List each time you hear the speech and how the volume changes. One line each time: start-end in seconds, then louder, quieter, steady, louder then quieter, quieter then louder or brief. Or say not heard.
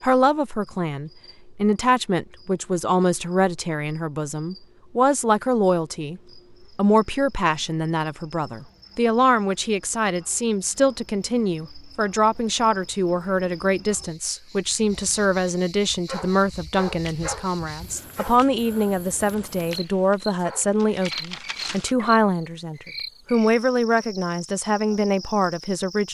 0.0-26.0 steady.